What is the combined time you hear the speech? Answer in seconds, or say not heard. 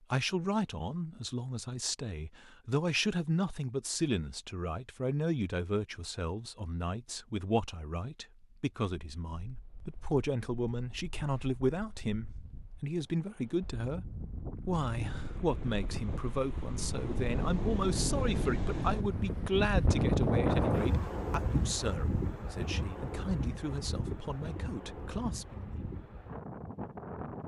26 s.